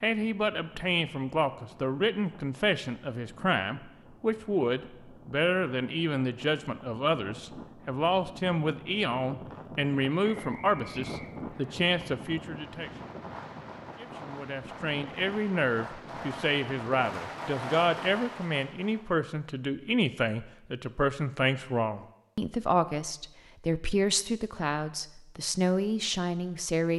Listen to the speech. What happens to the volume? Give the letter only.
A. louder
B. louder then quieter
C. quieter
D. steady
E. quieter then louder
D.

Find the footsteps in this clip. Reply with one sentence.
The footsteps can't be heard in this clip.